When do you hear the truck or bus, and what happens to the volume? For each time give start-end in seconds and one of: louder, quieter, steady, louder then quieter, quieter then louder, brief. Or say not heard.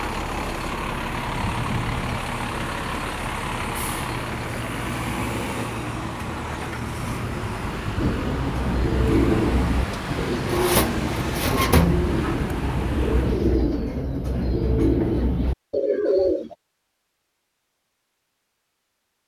0.0-13.4 steady.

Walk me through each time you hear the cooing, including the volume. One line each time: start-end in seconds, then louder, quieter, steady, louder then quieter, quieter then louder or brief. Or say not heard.
8.0-16.6 steady.